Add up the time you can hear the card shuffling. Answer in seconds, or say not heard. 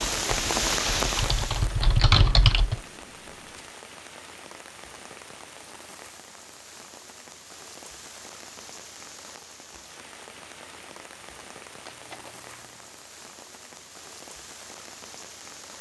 2 s.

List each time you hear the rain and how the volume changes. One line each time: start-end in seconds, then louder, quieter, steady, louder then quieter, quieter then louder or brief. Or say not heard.
0.0-15.7 quieter.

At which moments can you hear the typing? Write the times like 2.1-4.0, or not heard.
0.0-2.8.